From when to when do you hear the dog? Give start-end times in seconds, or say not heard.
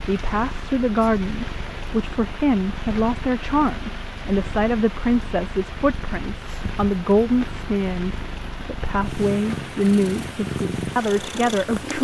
not heard.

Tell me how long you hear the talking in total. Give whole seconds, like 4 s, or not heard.
12 s.